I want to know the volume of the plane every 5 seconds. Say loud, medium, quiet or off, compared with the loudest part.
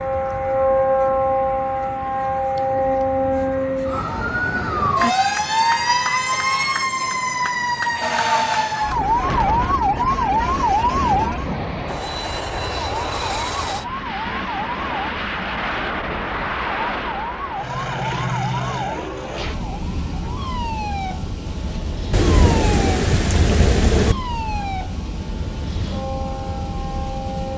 medium, medium, loud, loud, medium, medium.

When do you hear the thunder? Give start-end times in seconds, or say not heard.
8.9-11.6, 22.1-24.1.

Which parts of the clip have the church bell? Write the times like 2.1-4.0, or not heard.
not heard.